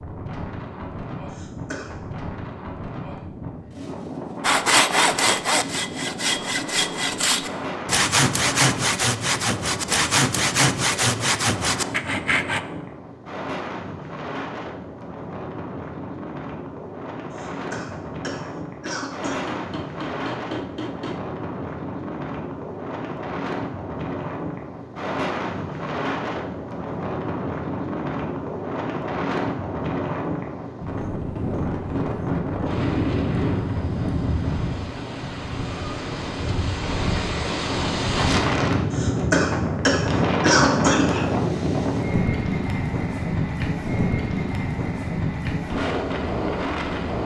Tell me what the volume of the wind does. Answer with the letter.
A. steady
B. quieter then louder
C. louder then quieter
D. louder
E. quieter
D.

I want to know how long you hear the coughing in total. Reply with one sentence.
The coughing can be heard for 5 seconds in total.